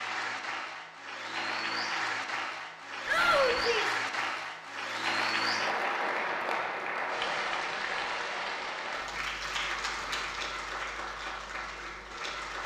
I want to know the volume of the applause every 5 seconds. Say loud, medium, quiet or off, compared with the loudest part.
loud, loud, medium.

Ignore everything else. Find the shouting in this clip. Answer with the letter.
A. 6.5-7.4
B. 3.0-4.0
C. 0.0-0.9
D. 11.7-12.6
B.